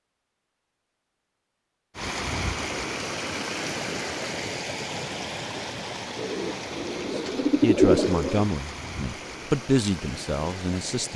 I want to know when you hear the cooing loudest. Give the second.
8 s.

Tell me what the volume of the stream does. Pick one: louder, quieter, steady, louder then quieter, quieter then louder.
quieter.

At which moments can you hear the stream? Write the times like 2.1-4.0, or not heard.
1.9-11.1.